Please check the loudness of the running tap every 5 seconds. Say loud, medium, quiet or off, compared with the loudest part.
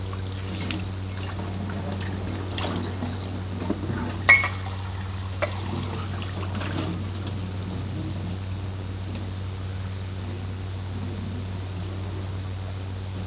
loud, medium, quiet.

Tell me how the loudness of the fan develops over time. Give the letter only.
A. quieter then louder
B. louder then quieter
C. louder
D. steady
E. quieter
D.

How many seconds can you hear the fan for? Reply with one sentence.
The fan can be heard for 13 seconds in total.